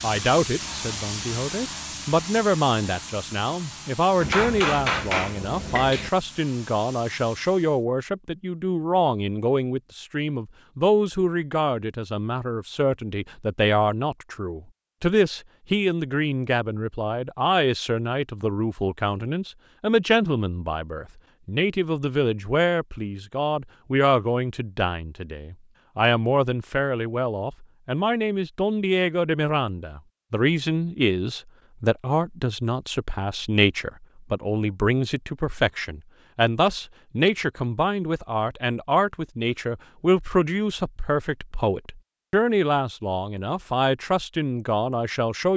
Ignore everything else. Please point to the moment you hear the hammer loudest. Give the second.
5 s.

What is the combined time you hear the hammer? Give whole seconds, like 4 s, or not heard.
2 s.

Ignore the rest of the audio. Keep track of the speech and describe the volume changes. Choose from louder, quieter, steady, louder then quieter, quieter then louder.
steady.